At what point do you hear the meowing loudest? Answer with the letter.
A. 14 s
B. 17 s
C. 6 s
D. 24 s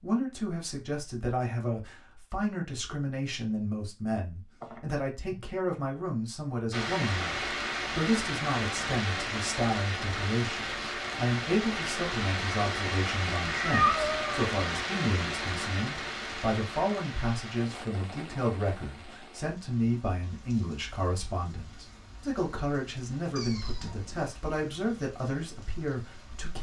A.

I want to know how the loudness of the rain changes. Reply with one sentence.
The volume of the rain goes down.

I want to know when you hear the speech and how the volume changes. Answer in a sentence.
The speech can be heard from 0.0 to 26.5 s, at a steady volume.